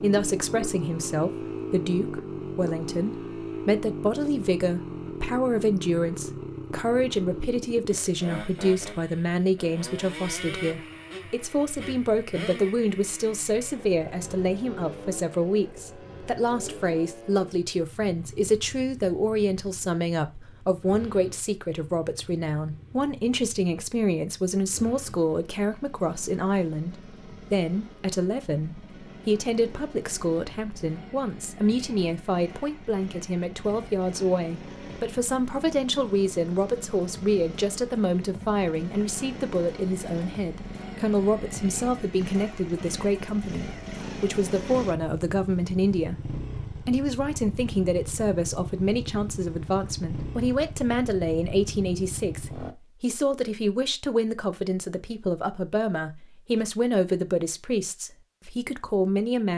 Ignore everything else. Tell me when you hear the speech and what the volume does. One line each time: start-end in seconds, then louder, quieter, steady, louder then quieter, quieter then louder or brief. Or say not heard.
0.0-59.5 steady.